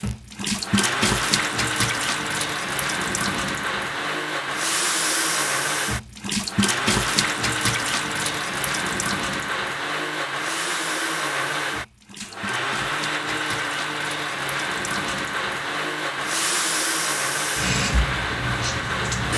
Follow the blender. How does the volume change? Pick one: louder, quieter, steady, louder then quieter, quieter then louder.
steady.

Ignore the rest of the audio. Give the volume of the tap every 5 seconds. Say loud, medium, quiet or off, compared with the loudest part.
loud, loud, medium, loud.